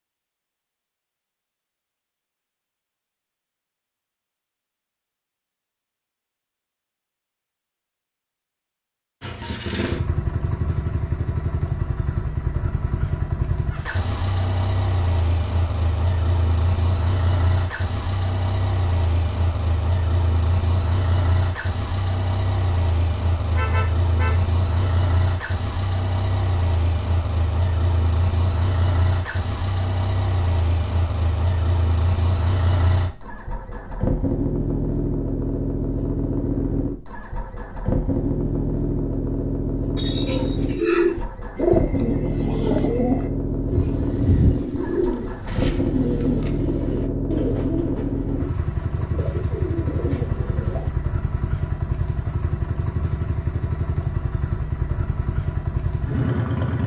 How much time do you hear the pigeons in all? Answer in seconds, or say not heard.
11 s.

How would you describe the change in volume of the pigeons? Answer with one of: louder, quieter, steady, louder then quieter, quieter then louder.
quieter.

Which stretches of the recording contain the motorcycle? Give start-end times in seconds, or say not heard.
9.2-56.8.